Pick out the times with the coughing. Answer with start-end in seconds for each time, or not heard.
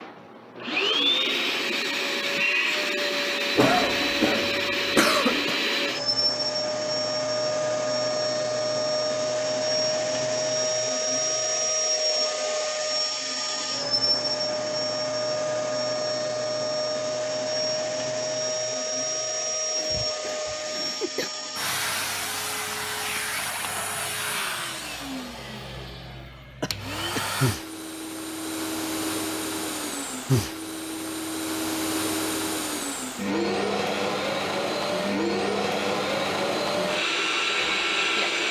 3.5-5.5, 19.8-21.3, 26.6-27.3.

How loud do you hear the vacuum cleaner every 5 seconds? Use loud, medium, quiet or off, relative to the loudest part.
loud, loud, loud, loud, medium, medium, loud, loud.